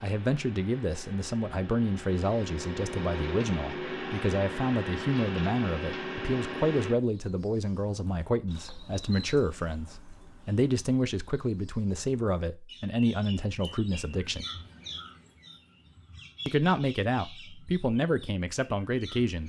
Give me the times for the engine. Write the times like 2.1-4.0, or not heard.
0.0-7.0.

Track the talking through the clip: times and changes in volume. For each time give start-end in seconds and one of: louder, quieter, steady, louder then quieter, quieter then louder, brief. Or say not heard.
0.0-14.4 steady
16.4-19.4 brief.